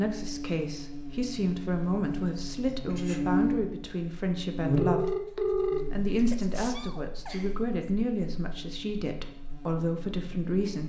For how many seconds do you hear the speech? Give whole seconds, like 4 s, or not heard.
11 s.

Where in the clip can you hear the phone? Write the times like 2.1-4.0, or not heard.
4.8-6.7.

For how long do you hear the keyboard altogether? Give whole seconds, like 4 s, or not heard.
not heard.